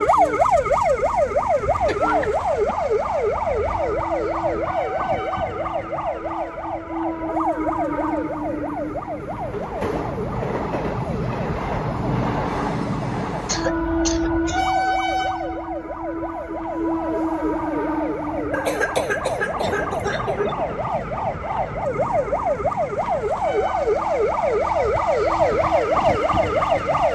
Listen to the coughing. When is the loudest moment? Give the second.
19 s.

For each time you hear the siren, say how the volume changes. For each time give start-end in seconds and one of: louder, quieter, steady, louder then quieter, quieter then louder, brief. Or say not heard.
0.0-27.1 quieter then louder.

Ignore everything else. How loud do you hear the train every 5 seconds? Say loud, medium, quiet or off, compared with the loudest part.
medium, medium, loud, loud, medium, quiet.